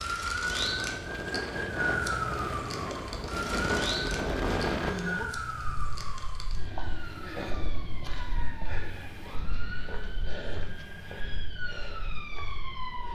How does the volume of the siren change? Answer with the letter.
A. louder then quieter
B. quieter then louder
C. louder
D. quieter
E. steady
D.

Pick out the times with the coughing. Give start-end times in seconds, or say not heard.
not heard.